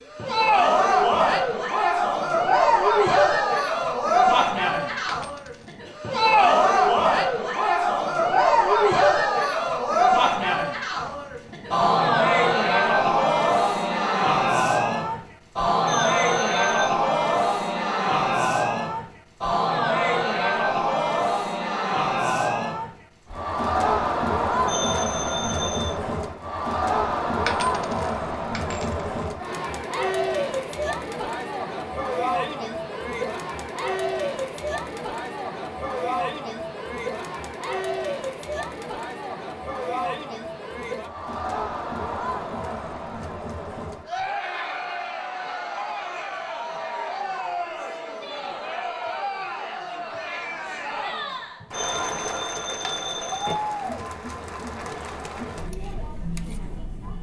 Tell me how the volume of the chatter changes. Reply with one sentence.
The volume of the chatter goes down.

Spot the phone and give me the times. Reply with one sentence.
You can hear the phone from 15.8 to 16.9 s, from 24.6 to 26.0 s and from 51.7 to 53.5 s.